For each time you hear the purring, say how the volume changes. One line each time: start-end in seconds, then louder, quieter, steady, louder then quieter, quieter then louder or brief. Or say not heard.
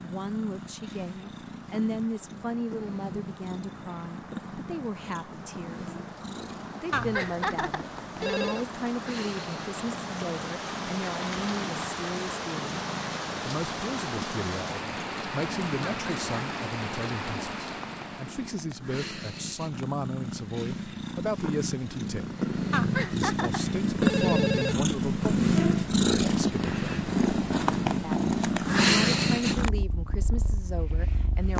0.0-31.5 louder.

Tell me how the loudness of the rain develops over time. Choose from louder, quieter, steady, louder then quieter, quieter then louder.
louder.